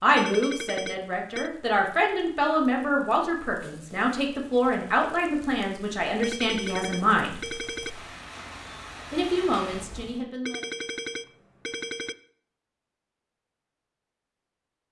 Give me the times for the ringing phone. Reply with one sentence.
You can hear the ringing phone from 0.1 to 1.5 s, from 6.2 to 7.9 s and from 10.4 to 12.2 s.